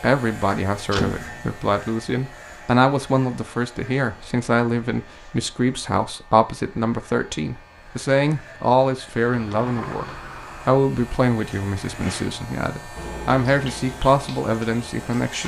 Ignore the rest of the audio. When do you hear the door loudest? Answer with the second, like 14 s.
1 s.